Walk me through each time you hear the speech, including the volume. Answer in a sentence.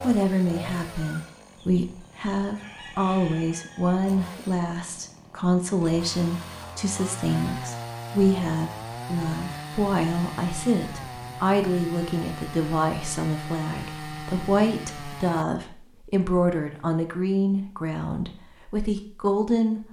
The speech can be heard from 0.0 to 19.8 s, at a steady volume.